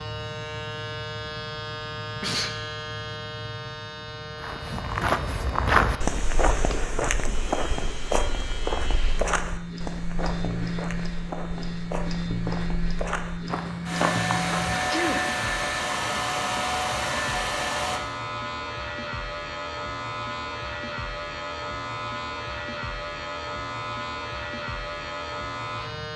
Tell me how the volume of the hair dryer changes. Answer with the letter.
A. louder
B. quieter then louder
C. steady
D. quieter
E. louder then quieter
C.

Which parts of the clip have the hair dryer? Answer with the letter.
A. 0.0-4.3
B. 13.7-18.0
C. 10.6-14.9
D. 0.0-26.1
B.